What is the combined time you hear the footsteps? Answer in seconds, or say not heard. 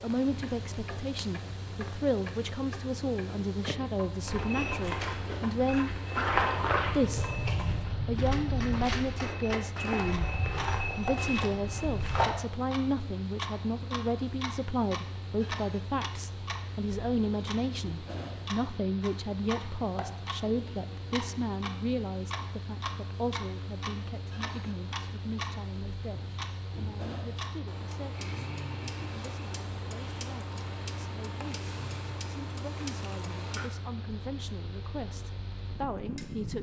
8 s.